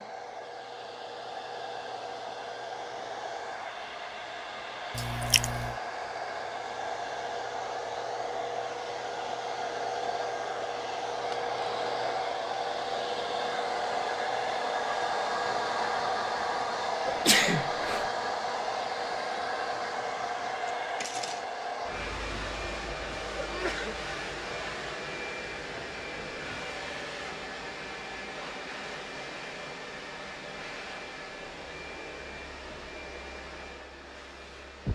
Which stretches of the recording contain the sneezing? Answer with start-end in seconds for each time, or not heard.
5.0-5.8, 17.1-18.1, 23.4-23.9.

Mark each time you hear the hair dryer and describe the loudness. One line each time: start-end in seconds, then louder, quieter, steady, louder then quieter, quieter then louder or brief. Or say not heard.
0.0-34.9 louder then quieter.